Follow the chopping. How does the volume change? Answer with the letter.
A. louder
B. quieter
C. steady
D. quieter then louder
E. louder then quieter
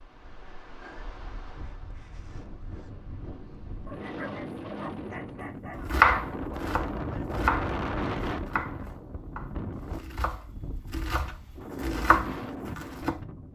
D.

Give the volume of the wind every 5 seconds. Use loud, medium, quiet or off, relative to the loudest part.
medium, loud, medium.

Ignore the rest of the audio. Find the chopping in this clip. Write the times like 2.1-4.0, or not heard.
5.9-13.2.